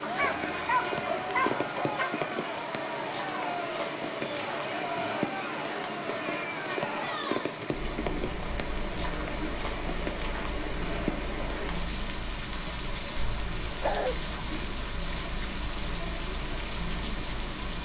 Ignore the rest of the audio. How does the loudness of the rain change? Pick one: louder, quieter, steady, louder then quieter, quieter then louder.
steady.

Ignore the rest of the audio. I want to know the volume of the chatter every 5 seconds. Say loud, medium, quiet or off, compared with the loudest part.
loud, loud, medium, medium.